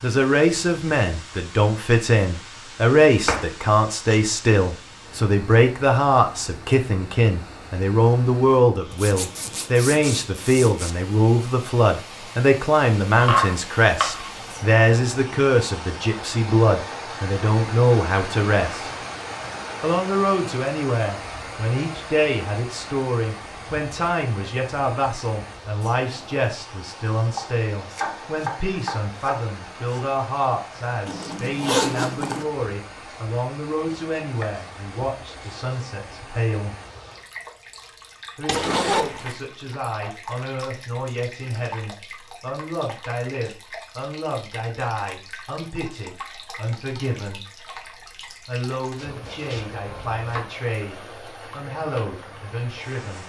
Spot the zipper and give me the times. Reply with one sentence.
The zipper can be heard from 8.9 to 10.9 s, from 31.1 to 32.5 s and from 38.5 to 39.4 s.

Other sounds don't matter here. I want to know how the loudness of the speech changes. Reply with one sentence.
The loudness of the speech goes down.